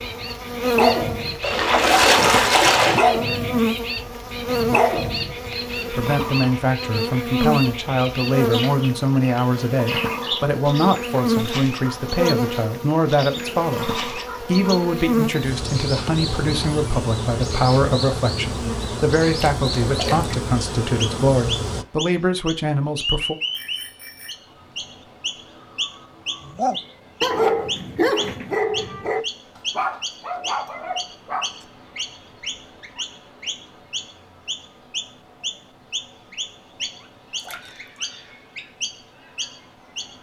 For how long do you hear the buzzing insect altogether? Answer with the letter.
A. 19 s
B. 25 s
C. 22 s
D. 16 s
C.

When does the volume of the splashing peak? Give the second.
2 s.